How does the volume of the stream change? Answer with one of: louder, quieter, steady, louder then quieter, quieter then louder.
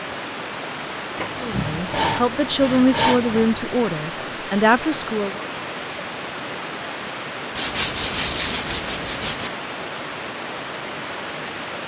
steady.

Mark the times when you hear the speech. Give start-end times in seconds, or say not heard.
1.4-5.4.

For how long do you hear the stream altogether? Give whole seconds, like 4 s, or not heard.
12 s.